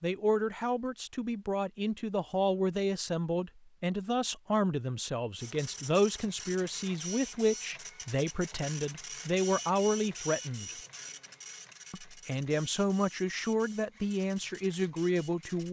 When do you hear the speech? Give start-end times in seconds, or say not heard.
0.0-10.8, 11.9-15.6.